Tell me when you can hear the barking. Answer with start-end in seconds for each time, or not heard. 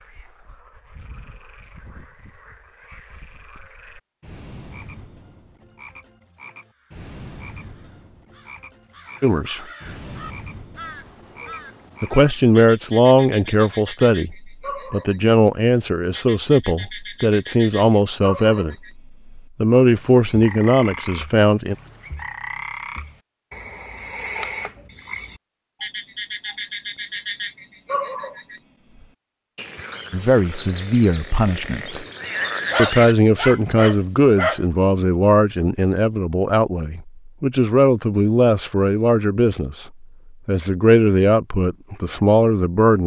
32.7-34.6.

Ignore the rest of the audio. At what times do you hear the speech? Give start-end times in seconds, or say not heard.
9.2-9.6, 12.0-18.8, 19.6-21.8, 30.1-32.0, 32.8-43.0.